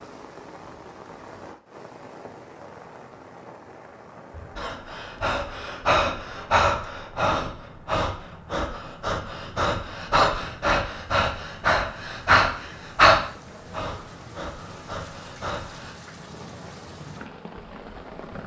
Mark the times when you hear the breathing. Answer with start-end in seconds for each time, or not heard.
4.3-15.9.